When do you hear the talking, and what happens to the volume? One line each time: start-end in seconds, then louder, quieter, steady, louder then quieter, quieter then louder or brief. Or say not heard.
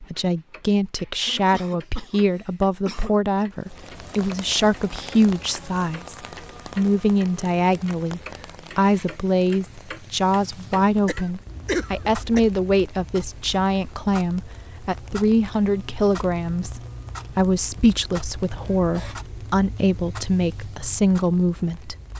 0.0-21.9 steady.